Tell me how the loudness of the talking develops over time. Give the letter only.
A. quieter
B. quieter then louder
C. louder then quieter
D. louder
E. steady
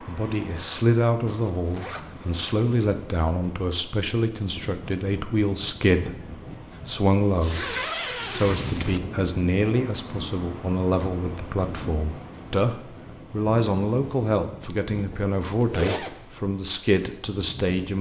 E.